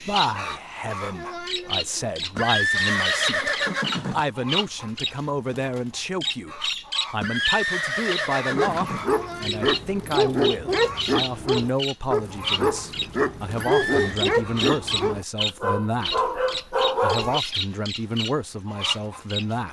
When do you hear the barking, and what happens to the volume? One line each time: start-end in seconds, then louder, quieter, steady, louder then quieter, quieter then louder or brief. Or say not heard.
8.6-17.4 steady.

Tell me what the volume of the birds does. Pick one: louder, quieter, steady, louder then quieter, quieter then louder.
steady.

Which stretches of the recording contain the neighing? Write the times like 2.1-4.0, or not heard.
2.4-4.2, 7.2-9.1, 13.6-14.2.